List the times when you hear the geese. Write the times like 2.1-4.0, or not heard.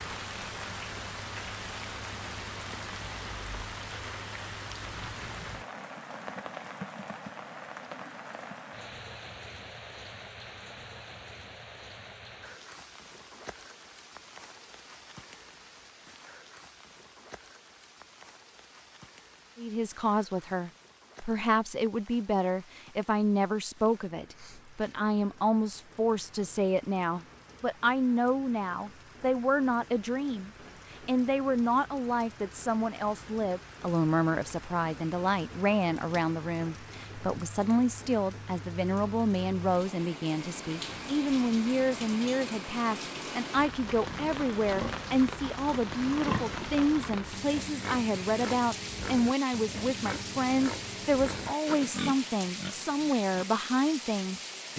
not heard.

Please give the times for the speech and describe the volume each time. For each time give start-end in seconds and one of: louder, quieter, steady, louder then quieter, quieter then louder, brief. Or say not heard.
19.6-54.7 steady.